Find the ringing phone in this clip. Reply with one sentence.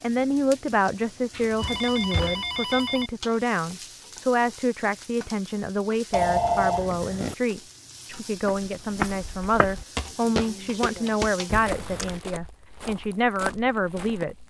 The ringing phone can be heard from 1.3 to 3.1 s, from 6.1 to 7.3 s and from 11.4 to 12.2 s.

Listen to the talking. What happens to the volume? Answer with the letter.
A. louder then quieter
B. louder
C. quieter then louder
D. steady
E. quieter
D.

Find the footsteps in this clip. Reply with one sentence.
The footsteps can be heard from 8.4 to 14.4 s.